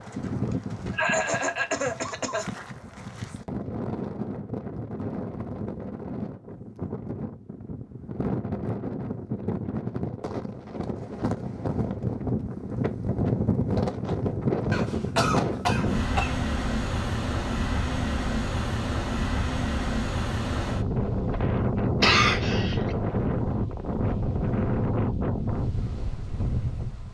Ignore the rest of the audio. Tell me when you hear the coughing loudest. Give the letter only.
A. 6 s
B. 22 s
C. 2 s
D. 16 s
B.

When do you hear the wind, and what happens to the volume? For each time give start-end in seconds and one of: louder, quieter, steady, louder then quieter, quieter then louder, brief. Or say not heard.
0.0-27.0 louder.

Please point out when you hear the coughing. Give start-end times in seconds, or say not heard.
0.9-2.5, 14.7-16.4, 22.0-22.9.